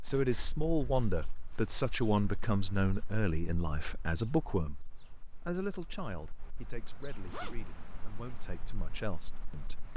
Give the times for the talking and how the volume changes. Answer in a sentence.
You can hear the talking from 0.0 to 4.8 s, at a steady volume; and from 5.5 to 9.9 s, getting quieter then louder.